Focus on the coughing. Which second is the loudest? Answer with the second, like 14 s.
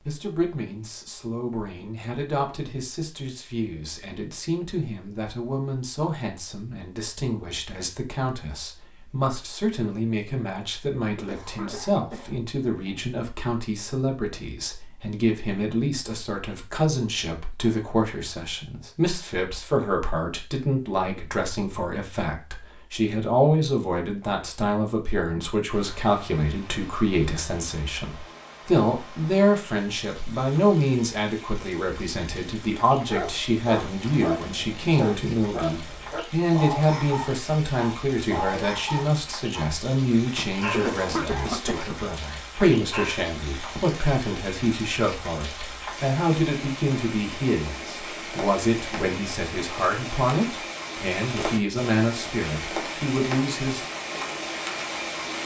41 s.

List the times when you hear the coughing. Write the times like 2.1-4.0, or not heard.
11.2-13.0, 40.7-42.0.